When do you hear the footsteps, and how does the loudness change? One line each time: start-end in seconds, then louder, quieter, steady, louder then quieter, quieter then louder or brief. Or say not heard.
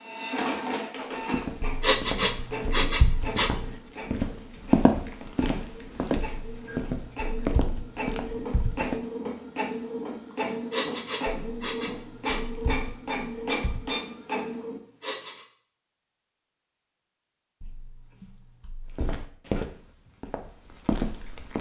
1.1-9.1 louder then quieter
18.9-21.5 brief.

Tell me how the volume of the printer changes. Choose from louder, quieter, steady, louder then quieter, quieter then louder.
quieter then louder.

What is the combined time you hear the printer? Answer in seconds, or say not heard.
15 s.